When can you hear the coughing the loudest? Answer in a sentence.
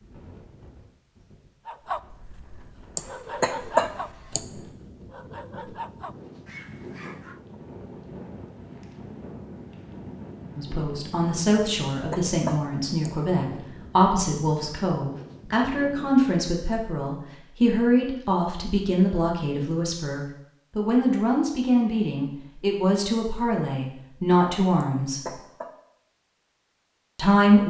The loudest moment of the coughing is at 4 seconds.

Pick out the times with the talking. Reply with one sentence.
The talking can be heard from 10.6 to 25.4 s and from 27.1 to 27.6 s.